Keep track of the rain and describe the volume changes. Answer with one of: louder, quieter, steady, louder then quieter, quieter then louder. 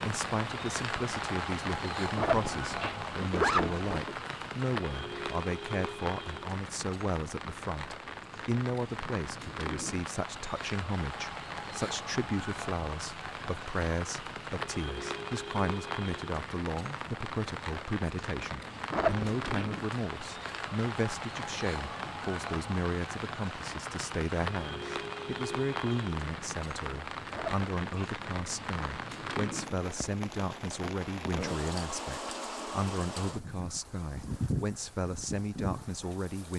steady.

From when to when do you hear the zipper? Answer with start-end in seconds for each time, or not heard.
2.1-4.2, 18.9-19.6, 27.3-28.2.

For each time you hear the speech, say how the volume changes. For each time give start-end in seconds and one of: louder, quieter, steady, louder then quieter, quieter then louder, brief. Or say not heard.
0.0-36.5 steady.